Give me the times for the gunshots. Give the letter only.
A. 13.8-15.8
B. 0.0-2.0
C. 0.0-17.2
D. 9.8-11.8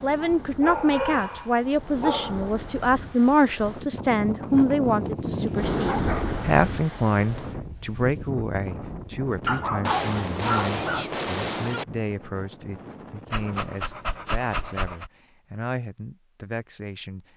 D.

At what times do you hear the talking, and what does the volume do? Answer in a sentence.
The talking can be heard from 0.0 to 17.2 s, getting quieter.